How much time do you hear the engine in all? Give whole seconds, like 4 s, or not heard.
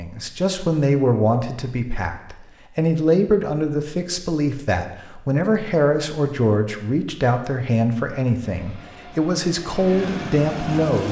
3 s.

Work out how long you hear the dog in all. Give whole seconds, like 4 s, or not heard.
not heard.